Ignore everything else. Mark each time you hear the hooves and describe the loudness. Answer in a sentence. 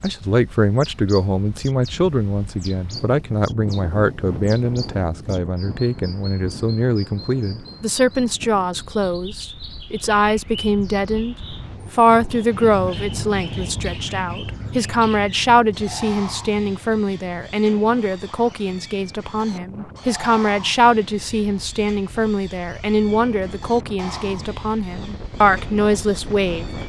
The hooves can't be heard in this clip.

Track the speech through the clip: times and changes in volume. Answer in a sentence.
The speech can be heard from 0.0 to 26.8 s, at a steady volume.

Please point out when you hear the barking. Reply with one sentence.
The barking can't be heard in this clip.